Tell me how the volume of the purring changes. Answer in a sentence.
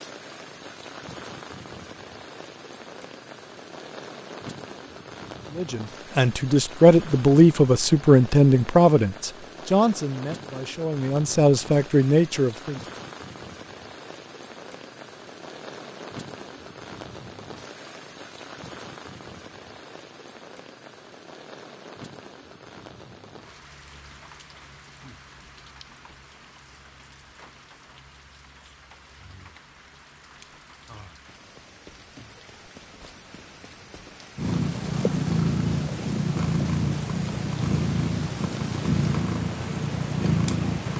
The loudness of the purring stays about the same.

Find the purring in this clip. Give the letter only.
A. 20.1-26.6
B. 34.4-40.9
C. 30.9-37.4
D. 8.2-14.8
B.